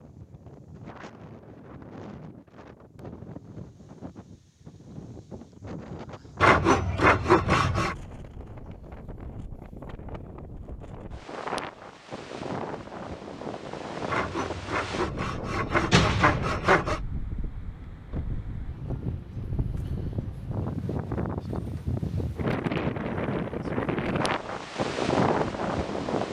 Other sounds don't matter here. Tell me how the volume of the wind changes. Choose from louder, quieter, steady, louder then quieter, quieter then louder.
louder.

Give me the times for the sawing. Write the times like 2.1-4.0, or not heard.
6.4-8.0, 14.1-17.0.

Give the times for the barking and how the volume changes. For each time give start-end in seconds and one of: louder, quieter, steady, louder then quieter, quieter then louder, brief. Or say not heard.
not heard.